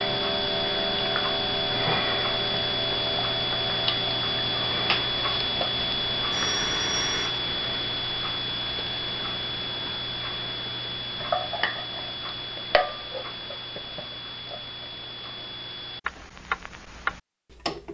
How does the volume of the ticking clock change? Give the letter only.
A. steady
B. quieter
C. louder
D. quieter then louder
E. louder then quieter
B.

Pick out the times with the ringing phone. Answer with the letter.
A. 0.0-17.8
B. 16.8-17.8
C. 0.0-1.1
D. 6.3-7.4
D.